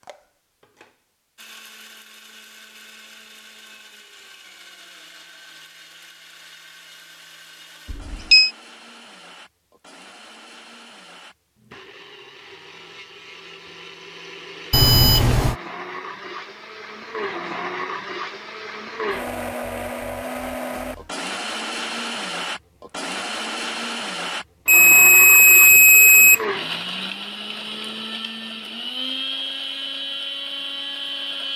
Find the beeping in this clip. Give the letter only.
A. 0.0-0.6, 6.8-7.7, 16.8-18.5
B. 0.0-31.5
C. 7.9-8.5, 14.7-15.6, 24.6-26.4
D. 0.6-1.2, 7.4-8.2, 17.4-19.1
C.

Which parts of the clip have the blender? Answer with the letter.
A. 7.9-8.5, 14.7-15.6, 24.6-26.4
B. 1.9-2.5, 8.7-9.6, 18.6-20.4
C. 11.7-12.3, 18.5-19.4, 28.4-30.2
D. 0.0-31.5
D.